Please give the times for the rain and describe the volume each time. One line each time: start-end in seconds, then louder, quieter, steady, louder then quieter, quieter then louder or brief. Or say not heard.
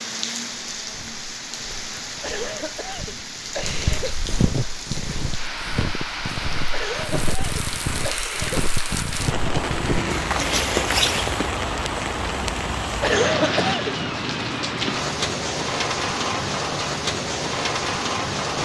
0.0-18.6 louder.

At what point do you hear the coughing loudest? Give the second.
13 s.